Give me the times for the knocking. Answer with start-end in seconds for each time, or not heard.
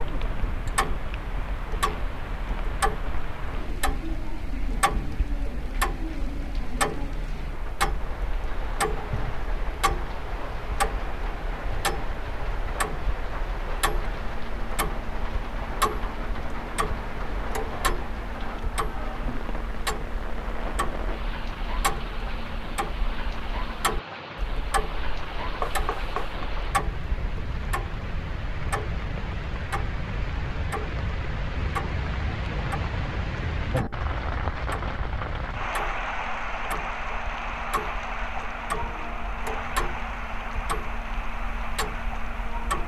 25.6-26.5.